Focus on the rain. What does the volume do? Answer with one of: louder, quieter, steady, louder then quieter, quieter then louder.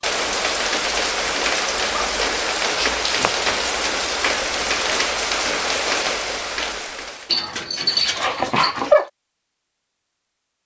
steady.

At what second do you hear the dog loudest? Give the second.
9 s.